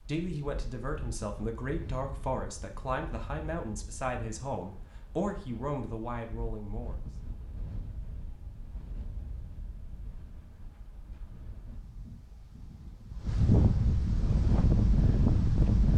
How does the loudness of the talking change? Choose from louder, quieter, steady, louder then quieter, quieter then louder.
steady.